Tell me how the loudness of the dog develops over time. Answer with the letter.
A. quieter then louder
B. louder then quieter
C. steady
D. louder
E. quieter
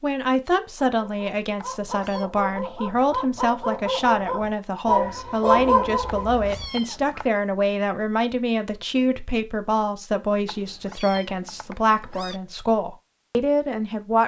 D.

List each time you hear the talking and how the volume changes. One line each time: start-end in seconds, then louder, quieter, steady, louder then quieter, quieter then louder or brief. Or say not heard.
0.0-14.2 steady.